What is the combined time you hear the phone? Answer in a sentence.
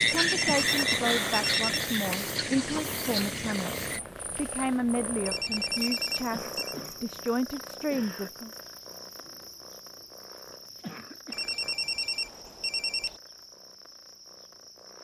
The phone can be heard for 5 seconds in total.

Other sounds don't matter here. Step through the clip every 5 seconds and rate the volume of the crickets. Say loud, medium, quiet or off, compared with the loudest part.
loud, quiet, quiet.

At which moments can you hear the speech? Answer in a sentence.
You can hear the speech from 0.0 to 8.5 s.